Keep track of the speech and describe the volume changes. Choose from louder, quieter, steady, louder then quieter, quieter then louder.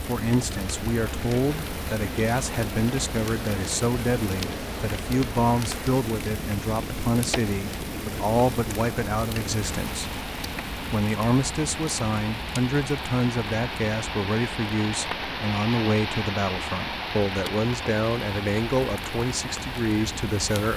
steady.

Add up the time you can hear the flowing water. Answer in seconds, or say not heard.
21 s.